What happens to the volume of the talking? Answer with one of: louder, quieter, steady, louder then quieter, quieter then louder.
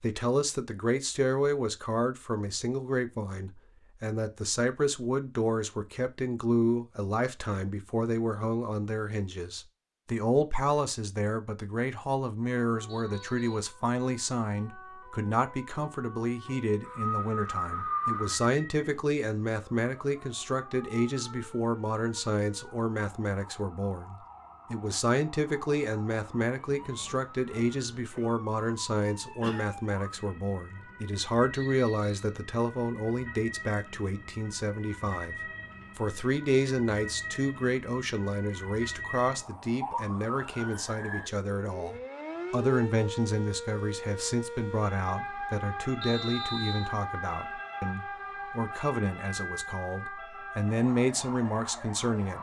steady.